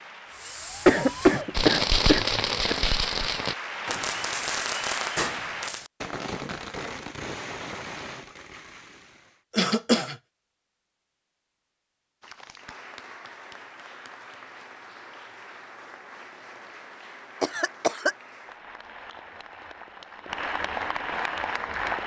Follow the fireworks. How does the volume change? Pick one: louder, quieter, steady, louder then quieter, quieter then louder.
quieter.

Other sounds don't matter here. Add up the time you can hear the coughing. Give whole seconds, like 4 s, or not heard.
3 s.